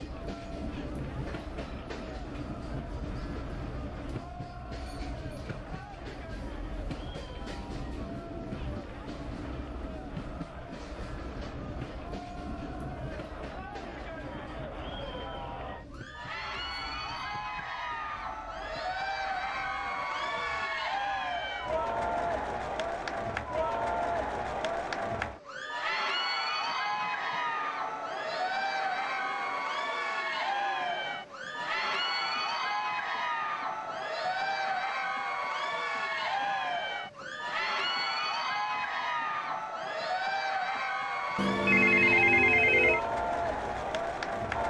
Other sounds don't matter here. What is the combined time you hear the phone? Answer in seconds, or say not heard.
2 s.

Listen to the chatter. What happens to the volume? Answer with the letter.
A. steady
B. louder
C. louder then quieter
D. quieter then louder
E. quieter
B.